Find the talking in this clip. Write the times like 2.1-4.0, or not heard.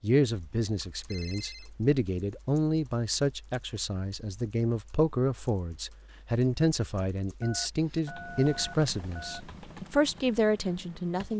0.0-11.3.